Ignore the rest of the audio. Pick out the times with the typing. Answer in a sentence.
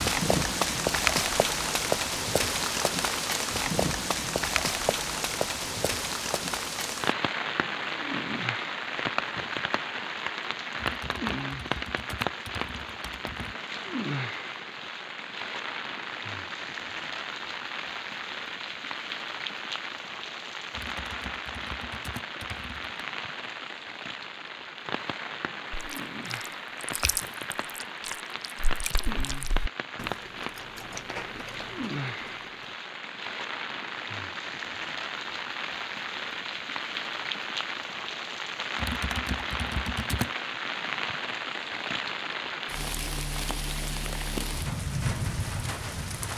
The typing can be heard from 10.8 to 13.6 s, from 20.7 to 22.9 s and from 38.8 to 40.3 s.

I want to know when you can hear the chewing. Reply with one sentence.
The chewing can be heard from 25.8 to 32.7 s.